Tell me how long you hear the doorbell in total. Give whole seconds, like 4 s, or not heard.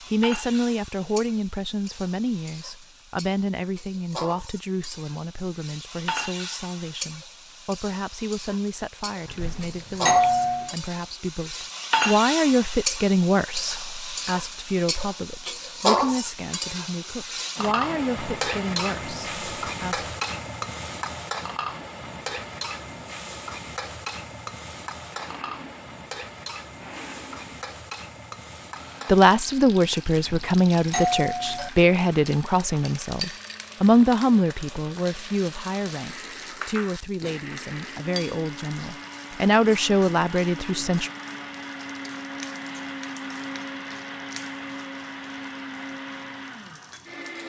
3 s.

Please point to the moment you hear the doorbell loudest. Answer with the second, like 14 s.
10 s.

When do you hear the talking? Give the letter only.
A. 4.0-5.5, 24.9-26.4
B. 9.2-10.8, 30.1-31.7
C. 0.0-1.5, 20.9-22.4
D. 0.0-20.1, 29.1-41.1
D.